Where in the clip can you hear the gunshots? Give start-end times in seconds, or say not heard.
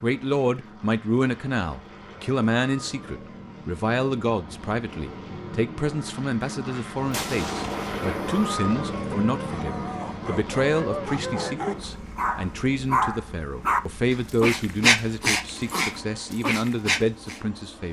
7.1-8.6.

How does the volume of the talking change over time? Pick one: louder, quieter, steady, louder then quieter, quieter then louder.
steady.